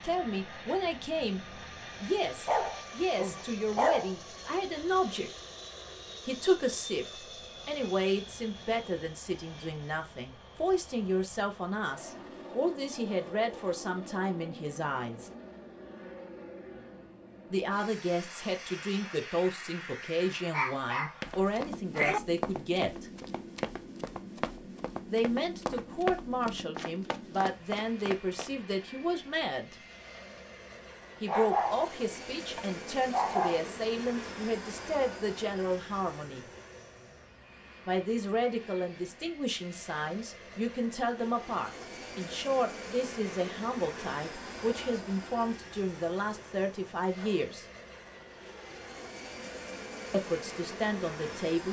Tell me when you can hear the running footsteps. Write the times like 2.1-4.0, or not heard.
21.2-28.5.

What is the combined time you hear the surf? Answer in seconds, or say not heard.
not heard.